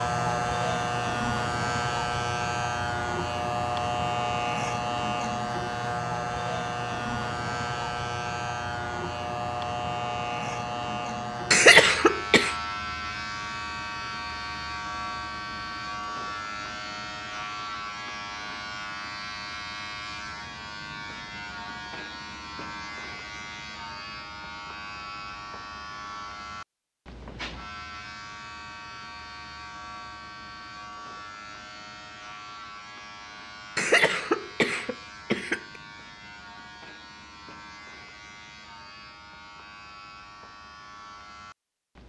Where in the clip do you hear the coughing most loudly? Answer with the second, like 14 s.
12 s.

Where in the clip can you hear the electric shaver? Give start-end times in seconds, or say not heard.
0.0-42.0.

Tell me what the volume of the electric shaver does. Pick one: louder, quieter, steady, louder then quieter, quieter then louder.
quieter.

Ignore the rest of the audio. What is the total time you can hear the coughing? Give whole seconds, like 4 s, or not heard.
3 s.